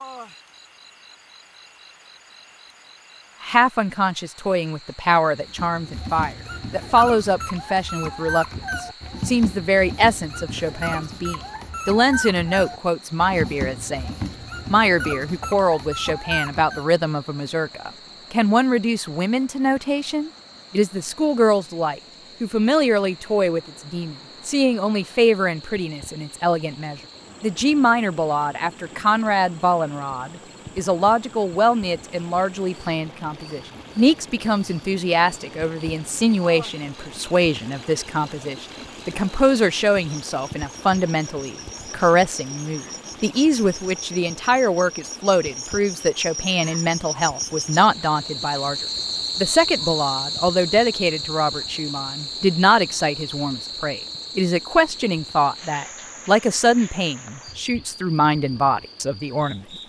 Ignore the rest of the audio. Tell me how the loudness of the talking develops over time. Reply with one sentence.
The volume of the talking stays about the same.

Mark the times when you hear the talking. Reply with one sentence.
The talking can be heard from 3.4 to 48.8 s and from 49.4 to 59.6 s.